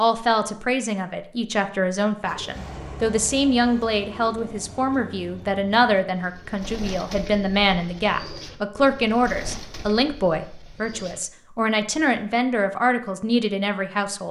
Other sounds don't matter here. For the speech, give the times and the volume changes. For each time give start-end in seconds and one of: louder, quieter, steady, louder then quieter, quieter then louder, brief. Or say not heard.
0.0-14.2 steady.